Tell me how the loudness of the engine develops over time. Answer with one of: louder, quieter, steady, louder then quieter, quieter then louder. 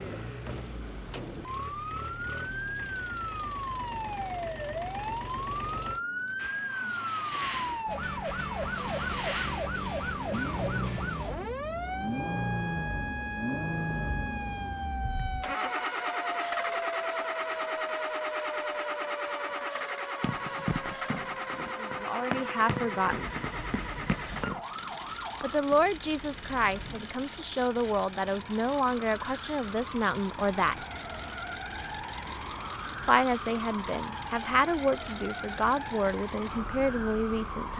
louder then quieter.